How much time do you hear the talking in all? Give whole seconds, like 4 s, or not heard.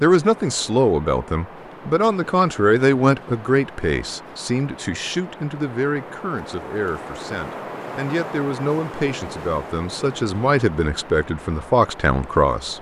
13 s.